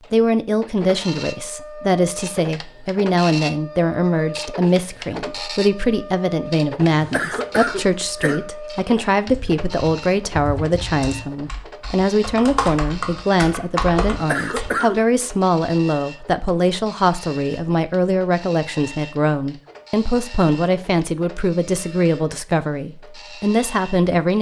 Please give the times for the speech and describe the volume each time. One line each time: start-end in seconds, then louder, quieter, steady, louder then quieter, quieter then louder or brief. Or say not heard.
0.1-24.3 steady.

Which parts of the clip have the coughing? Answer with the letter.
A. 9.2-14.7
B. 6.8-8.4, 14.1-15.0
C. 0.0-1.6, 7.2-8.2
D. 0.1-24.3
B.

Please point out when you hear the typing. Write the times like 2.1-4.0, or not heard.
9.2-14.7.